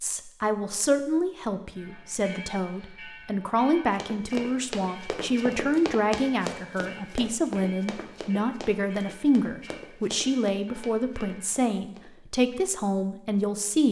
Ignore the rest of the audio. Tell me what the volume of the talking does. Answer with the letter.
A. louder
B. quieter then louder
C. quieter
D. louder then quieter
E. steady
E.